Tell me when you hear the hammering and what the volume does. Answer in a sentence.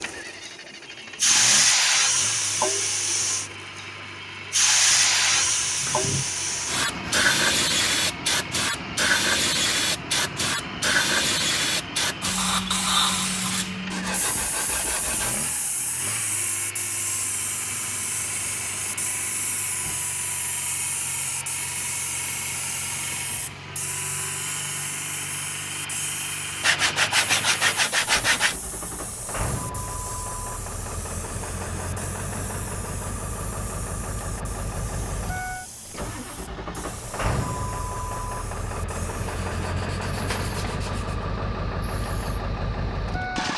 The hammering can't be heard in this clip.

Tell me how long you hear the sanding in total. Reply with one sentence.
You can hear the sanding for 8 seconds altogether.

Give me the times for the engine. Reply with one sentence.
You can hear the engine from 0.0 to 43.5 s.